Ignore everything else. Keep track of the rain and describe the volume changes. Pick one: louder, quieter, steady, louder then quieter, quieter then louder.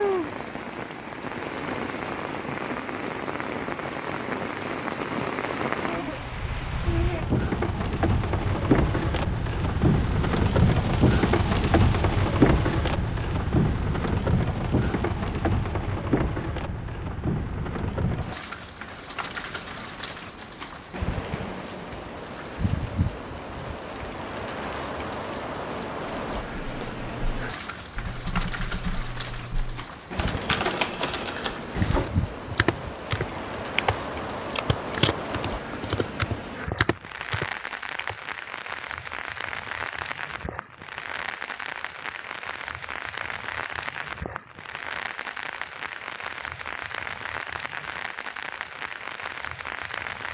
quieter.